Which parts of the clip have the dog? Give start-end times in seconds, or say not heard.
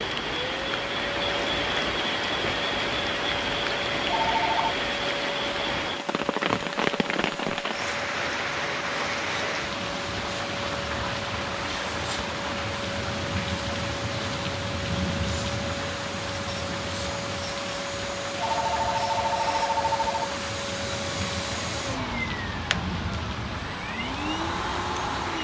not heard.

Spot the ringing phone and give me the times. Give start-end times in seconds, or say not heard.
4.0-4.8, 18.4-20.3.